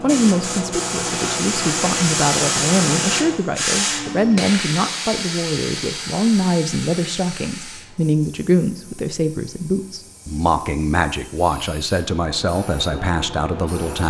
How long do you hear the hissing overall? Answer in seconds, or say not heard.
14 s.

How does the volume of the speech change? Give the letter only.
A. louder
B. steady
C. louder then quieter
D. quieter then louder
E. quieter
B.